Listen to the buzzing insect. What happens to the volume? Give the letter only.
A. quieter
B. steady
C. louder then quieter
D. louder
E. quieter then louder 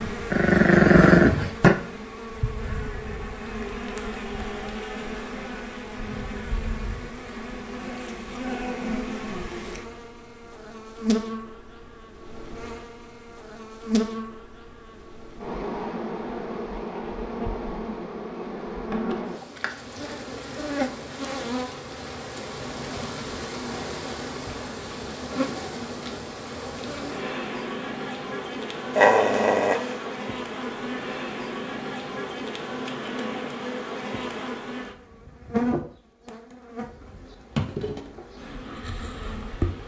B.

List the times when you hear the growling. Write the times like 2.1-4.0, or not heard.
0.3-1.8, 28.9-29.9.